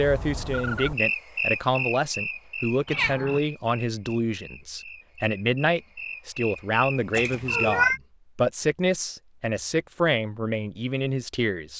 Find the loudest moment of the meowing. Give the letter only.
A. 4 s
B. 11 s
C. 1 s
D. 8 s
D.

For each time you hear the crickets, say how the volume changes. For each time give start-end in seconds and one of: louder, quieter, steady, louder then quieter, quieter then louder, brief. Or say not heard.
0.0-7.8 quieter then louder.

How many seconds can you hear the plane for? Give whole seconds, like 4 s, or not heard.
not heard.